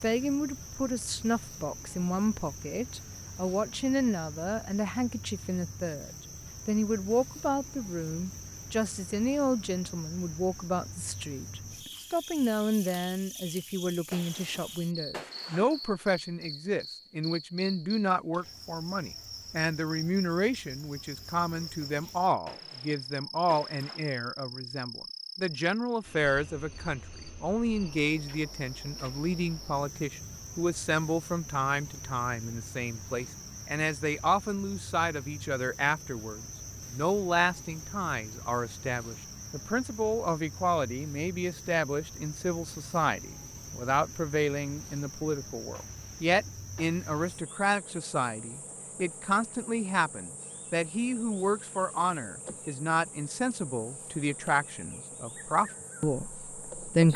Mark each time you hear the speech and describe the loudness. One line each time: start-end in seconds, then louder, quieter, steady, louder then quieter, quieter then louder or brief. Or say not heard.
0.0-57.1 steady.